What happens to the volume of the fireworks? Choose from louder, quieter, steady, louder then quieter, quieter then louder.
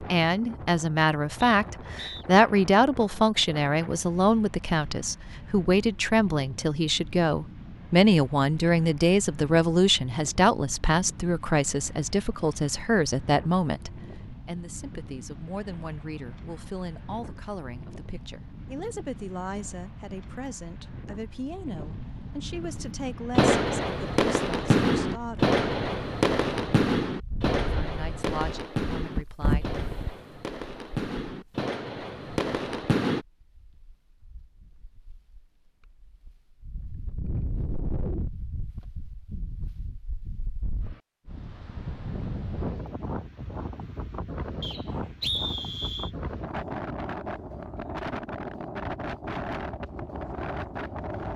quieter.